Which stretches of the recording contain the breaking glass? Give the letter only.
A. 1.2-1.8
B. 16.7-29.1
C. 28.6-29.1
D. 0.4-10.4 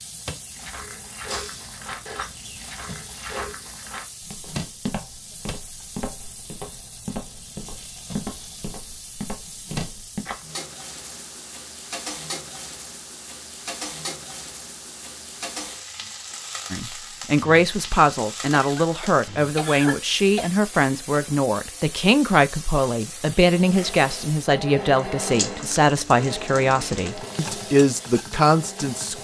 A.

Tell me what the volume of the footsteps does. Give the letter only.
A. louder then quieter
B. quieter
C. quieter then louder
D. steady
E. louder
D.